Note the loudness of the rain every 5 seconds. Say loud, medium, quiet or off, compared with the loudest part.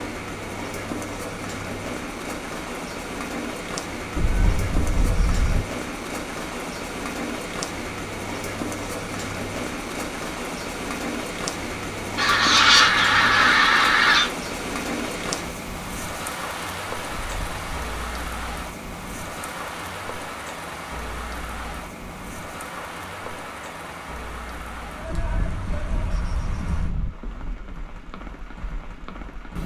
loud, loud, loud, loud, medium, medium.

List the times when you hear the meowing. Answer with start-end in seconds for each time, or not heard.
4.2-5.7, 17.1-17.9, 25.1-27.1.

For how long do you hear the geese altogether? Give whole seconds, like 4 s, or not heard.
2 s.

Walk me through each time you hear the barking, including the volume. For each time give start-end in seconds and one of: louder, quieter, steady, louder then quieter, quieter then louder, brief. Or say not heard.
not heard.